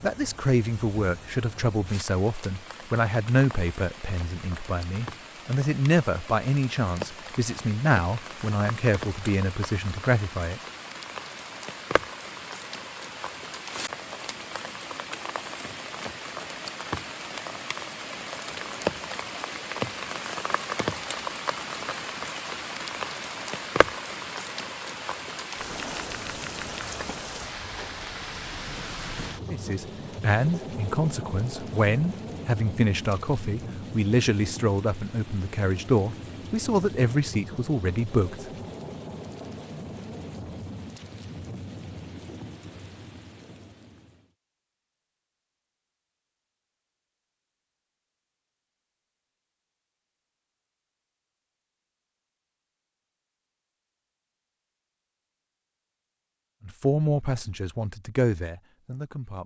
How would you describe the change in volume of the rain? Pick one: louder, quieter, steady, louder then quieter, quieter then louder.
louder then quieter.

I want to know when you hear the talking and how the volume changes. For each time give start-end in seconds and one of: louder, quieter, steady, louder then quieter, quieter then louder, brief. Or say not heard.
0.0-10.6 steady
29.5-38.5 steady
56.6-59.4 brief.